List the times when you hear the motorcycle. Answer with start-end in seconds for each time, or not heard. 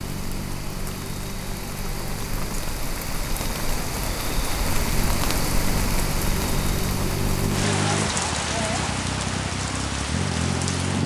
0.0-11.0.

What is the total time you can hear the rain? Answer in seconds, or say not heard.
11 s.